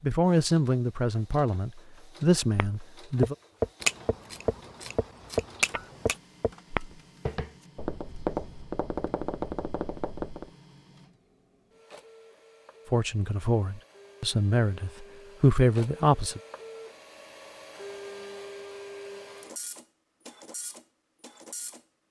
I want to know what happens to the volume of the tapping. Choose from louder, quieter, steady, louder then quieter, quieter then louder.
quieter.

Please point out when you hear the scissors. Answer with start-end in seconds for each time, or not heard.
3.8-6.2.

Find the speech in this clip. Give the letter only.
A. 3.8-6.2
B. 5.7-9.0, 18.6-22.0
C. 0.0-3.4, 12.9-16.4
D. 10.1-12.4
C.